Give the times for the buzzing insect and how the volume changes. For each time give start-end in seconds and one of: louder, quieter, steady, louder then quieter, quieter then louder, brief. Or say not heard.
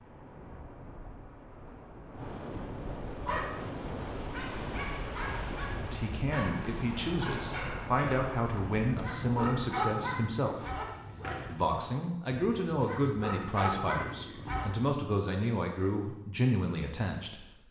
not heard.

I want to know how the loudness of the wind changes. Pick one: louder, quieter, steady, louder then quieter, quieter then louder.
louder.